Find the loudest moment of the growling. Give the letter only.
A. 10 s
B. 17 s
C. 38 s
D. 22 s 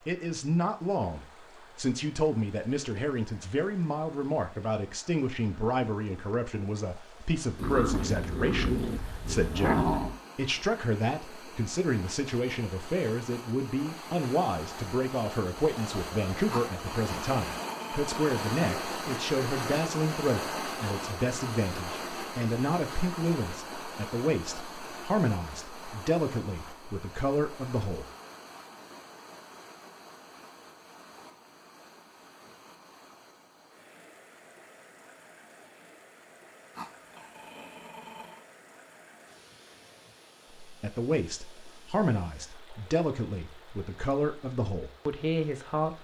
A.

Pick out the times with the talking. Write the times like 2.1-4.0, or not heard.
0.1-28.1, 40.6-46.0.